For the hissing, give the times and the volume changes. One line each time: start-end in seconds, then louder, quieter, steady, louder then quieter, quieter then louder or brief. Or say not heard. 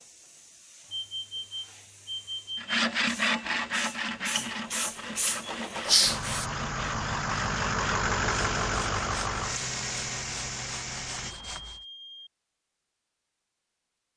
0.0-6.5 louder.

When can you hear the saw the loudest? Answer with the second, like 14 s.
3 s.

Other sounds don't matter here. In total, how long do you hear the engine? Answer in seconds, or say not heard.
5 s.